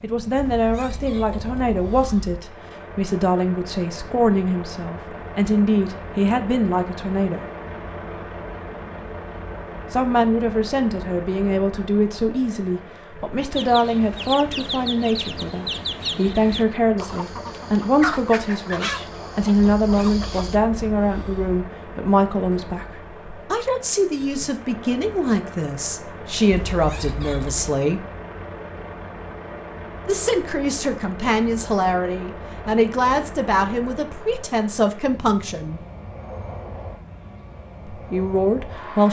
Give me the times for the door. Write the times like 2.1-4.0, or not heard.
not heard.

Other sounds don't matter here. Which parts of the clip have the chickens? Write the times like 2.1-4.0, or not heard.
13.5-20.6.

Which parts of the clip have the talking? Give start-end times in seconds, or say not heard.
0.0-7.4, 9.9-28.0, 30.1-35.8, 37.9-39.0.